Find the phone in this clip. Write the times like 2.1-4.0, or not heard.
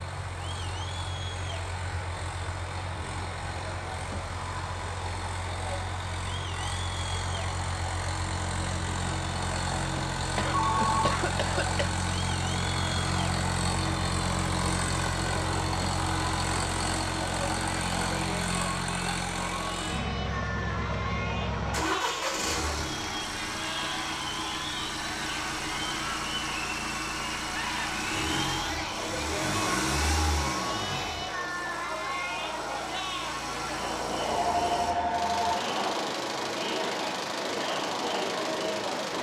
10.5-11.2, 34.3-35.6.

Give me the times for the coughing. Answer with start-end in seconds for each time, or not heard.
10.3-11.8.